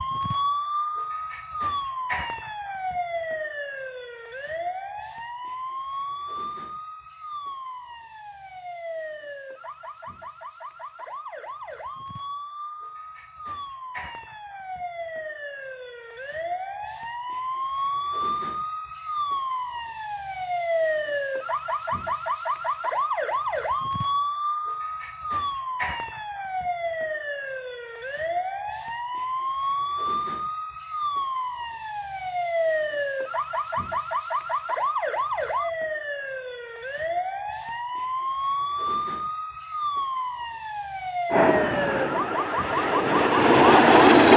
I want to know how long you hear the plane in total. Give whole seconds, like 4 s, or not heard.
3 s.